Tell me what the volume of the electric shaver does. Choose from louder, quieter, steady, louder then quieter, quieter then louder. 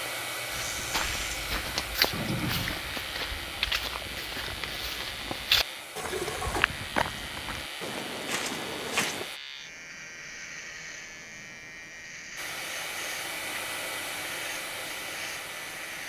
steady.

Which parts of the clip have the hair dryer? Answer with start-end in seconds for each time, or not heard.
0.0-9.4, 12.3-16.0.